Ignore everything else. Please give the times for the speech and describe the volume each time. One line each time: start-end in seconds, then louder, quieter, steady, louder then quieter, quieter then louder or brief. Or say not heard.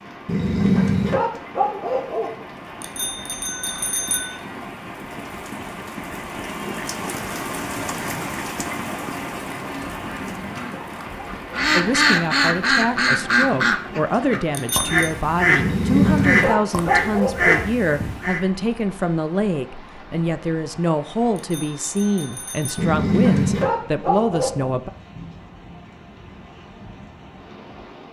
11.8-24.9 steady.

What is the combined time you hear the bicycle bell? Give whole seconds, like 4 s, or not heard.
4 s.